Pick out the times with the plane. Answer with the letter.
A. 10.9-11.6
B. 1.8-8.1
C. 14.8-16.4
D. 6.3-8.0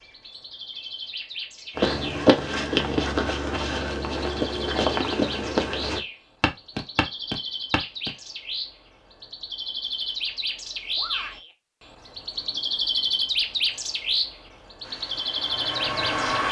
C.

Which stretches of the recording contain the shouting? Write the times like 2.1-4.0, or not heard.
10.9-11.6.